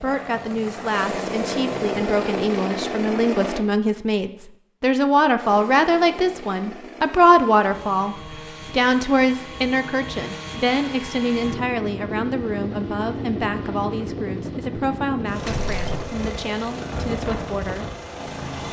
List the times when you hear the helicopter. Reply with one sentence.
You can hear the helicopter from 0.0 to 3.6 s and from 5.4 to 18.6 s.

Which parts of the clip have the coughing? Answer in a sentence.
The coughing can be heard from 15.4 to 16.1 s.